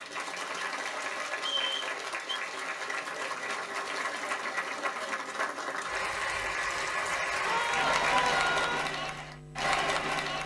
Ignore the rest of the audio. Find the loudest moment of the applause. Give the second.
8 s.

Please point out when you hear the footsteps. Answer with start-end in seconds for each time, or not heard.
not heard.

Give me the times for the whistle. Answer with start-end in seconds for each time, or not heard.
1.4-2.4.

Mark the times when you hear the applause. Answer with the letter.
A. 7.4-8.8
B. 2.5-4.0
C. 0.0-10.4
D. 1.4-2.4
C.